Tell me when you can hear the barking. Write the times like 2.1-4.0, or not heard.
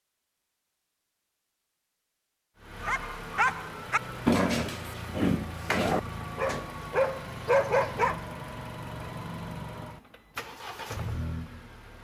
2.8-8.2.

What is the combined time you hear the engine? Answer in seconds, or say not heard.
9 s.